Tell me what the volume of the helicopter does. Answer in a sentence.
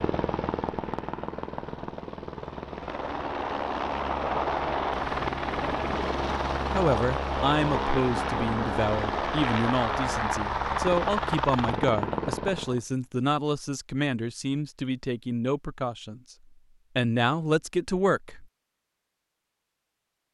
The loudness of the helicopter goes up.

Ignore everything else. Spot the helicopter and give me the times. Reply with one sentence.
You can hear the helicopter from 0.0 to 12.8 s.